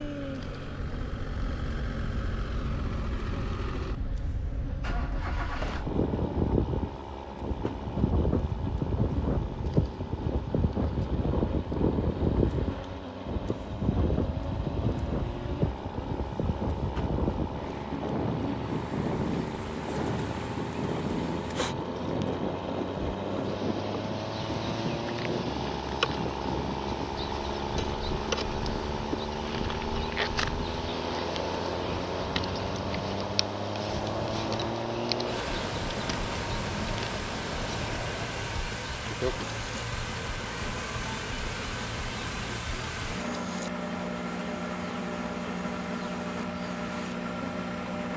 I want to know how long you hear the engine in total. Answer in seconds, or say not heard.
48 s.